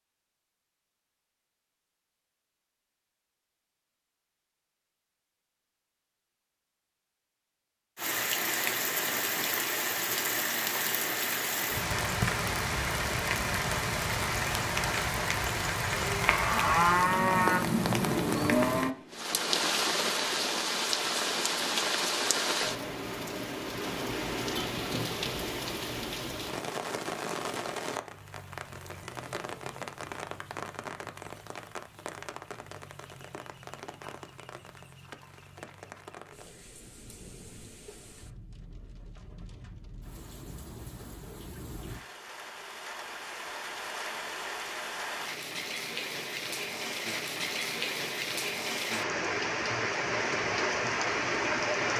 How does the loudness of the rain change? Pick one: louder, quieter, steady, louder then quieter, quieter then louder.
quieter then louder.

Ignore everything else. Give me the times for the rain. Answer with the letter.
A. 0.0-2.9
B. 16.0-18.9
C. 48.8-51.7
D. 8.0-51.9
D.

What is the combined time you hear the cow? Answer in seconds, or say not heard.
3 s.